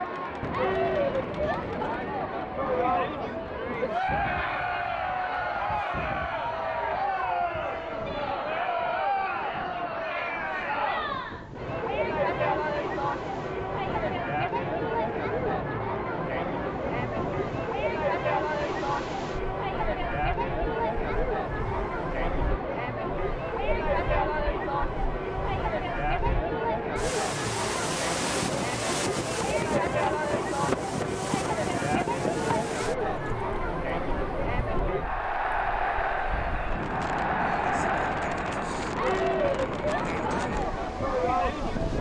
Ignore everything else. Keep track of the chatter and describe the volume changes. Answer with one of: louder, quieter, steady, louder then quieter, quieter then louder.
steady.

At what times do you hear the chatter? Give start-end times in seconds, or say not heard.
0.0-41.9.